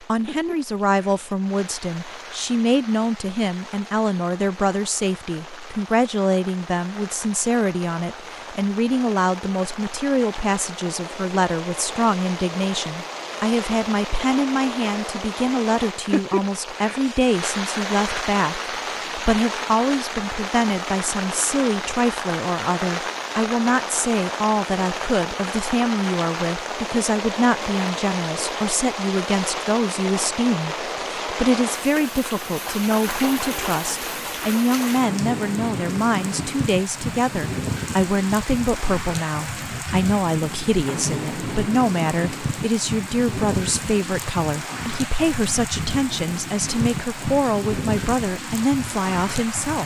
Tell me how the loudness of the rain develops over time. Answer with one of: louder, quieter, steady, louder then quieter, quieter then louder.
louder.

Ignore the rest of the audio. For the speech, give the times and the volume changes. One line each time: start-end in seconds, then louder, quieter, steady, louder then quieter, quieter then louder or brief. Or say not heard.
0.0-49.8 steady.